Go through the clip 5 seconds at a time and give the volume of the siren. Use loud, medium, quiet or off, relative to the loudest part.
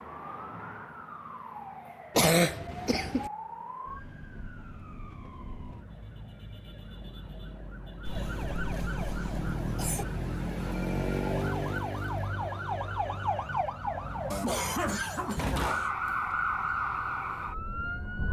medium, medium, loud, loud.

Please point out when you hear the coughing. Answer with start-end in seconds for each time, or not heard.
2.1-3.3, 8.1-10.1, 14.3-15.9.